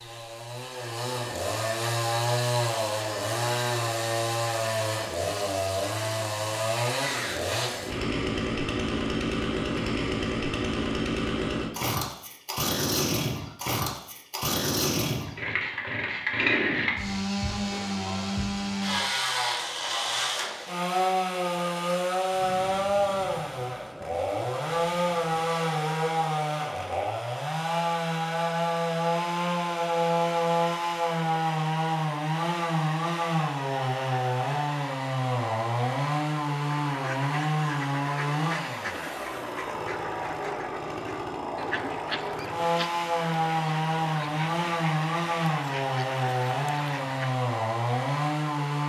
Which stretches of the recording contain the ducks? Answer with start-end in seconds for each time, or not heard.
36.8-47.4.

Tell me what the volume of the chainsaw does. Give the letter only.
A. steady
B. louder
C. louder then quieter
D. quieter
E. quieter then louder
A.